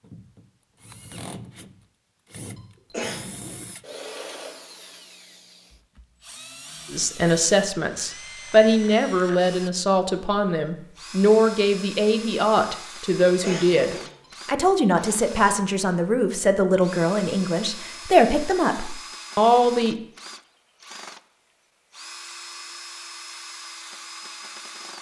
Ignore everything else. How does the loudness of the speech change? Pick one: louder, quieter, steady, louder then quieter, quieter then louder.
steady.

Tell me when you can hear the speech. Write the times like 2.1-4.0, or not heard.
6.9-19.9.